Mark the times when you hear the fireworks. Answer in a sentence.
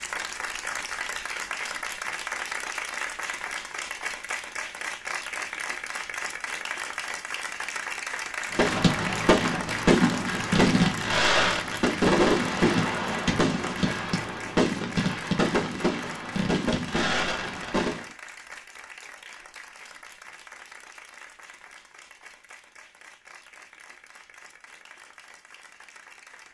You can hear the fireworks from 8.5 to 18.1 s.